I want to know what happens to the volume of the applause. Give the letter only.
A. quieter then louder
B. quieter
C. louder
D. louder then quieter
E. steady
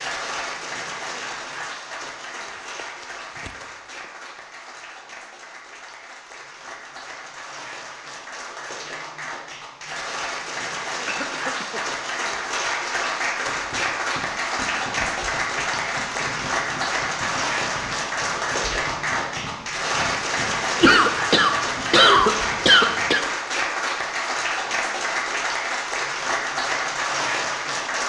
C.